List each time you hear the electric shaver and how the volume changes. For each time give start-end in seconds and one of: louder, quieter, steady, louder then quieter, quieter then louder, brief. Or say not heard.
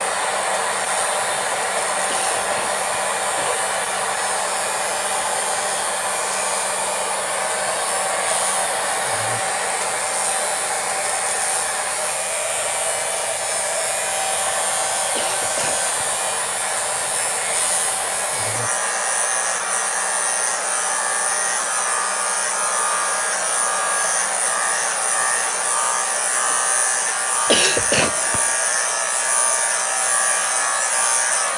0.0-31.5 louder.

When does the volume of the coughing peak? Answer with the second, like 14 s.
28 s.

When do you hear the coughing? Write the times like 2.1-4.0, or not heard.
2.0-3.6, 15.2-15.9, 27.4-28.5.